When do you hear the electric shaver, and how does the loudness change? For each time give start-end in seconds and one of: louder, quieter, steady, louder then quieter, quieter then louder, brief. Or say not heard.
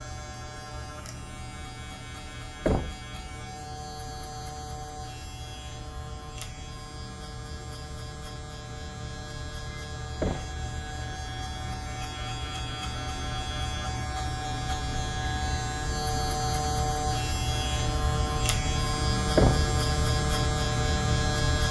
0.0-21.6 louder.